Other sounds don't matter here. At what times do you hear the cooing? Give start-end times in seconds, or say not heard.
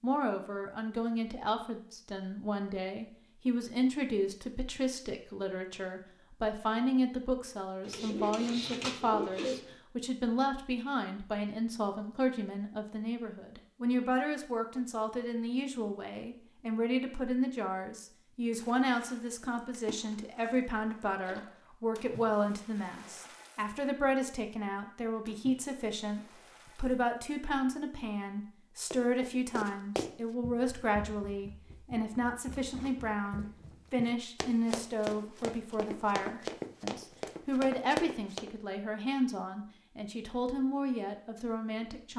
7.8-9.8.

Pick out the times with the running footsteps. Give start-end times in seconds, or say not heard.
28.9-38.5.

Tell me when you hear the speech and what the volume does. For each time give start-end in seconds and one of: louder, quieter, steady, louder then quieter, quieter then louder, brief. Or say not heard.
0.0-42.1 steady.